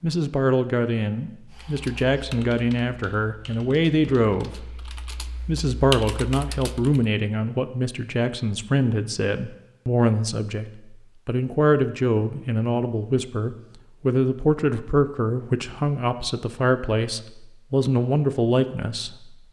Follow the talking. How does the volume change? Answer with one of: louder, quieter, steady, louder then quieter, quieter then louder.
steady.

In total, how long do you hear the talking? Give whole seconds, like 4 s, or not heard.
19 s.